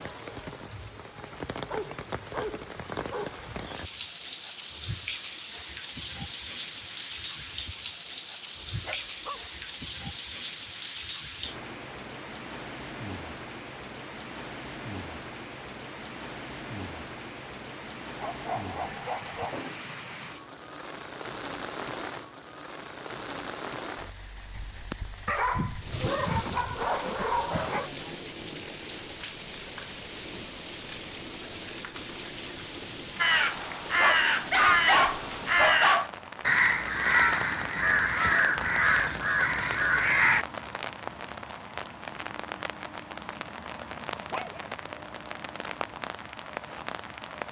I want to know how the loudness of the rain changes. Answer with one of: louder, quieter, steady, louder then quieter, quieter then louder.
steady.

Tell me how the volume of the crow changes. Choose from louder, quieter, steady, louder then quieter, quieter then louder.
steady.